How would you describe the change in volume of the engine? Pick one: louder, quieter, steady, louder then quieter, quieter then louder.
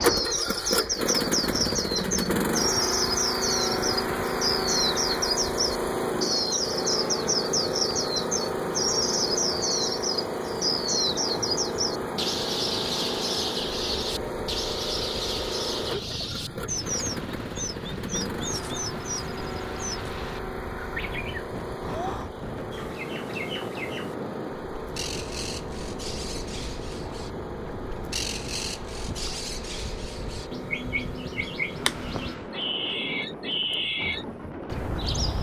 quieter.